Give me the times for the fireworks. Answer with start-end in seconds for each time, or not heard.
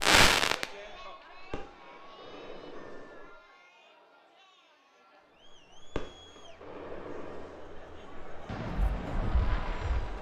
0.0-3.4, 5.5-10.1.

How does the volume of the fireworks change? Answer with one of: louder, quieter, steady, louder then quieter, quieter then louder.
quieter then louder.